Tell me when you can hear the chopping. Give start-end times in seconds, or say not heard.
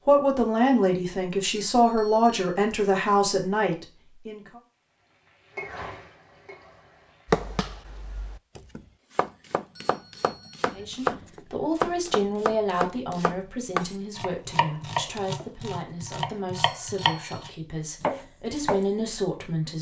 7.2-18.9.